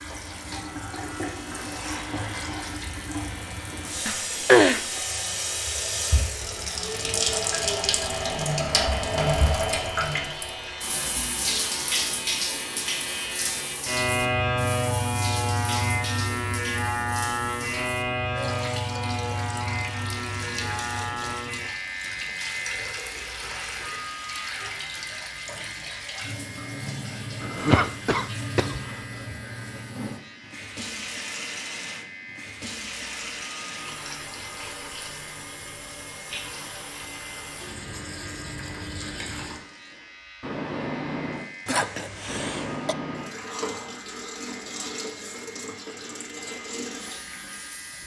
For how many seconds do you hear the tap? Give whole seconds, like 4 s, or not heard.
48 s.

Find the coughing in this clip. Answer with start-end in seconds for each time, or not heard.
4.0-4.8, 27.4-28.8, 41.6-43.0.